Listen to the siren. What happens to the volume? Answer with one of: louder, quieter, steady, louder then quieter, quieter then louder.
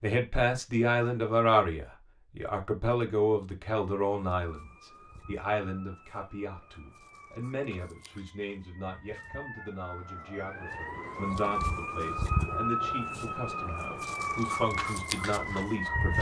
louder.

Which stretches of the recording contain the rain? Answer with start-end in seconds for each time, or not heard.
not heard.